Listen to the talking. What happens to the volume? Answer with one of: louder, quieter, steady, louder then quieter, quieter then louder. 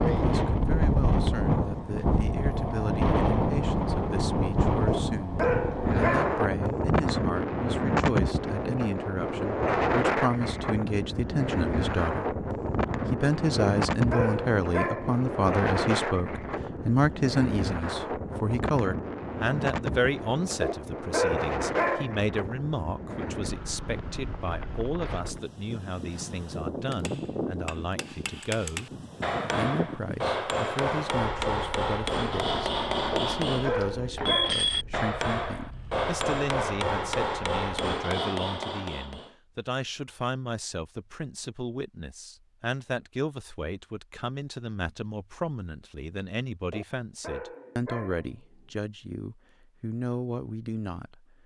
louder then quieter.